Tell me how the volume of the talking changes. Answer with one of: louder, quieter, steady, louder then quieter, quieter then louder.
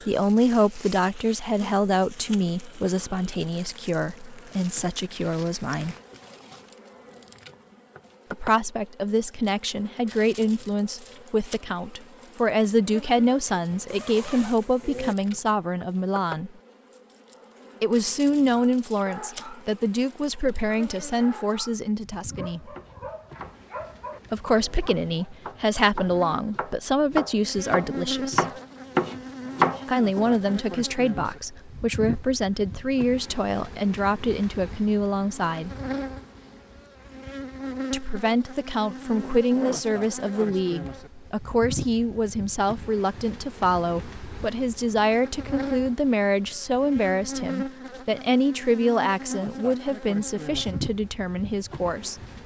steady.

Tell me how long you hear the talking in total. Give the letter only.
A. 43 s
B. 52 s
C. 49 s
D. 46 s
A.